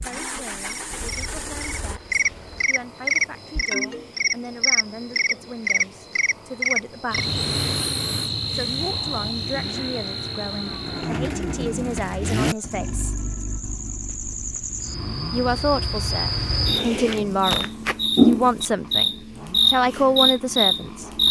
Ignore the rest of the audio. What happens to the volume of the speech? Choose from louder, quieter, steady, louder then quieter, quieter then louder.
louder.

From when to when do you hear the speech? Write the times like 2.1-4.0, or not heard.
0.0-7.3, 8.5-13.2, 15.3-21.1.